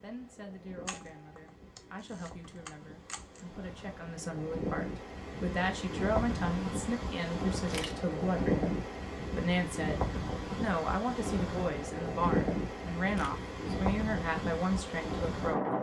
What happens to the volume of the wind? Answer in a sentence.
The loudness of the wind goes up.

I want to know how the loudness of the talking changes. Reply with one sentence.
The loudness of the talking goes up.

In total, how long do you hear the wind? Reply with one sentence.
You can hear the wind for 16 seconds altogether.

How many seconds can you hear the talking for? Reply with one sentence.
You can hear the talking for 16 seconds altogether.